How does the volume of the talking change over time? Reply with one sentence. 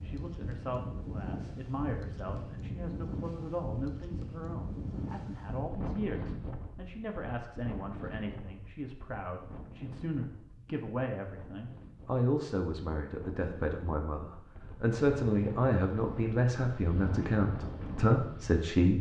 The volume of the talking goes up.